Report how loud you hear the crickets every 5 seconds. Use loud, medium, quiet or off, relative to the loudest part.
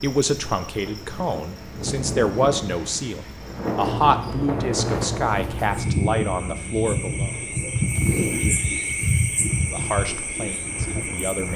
medium, loud, medium.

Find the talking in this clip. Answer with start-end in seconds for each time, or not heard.
0.0-7.3, 9.7-11.5.